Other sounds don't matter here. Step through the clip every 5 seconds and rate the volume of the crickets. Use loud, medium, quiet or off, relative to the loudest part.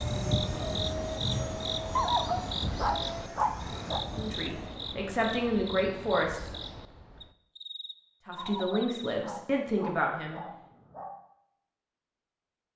loud, medium, off.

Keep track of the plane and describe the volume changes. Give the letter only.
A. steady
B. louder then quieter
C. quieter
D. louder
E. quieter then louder
C.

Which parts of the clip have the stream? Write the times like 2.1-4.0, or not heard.
not heard.